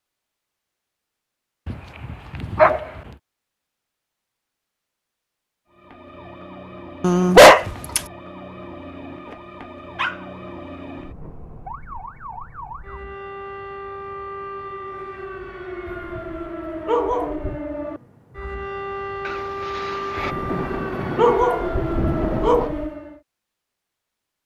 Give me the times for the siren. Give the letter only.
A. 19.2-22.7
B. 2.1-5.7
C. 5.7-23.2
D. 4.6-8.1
C.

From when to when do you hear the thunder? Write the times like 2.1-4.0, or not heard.
19.2-22.7.